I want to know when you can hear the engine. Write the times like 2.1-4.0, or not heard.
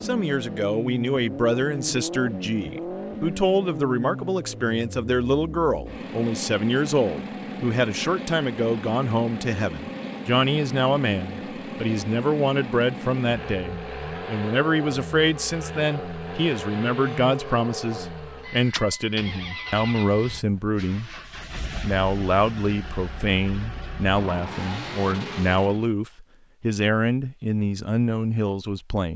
0.0-25.9.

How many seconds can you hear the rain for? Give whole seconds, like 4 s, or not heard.
not heard.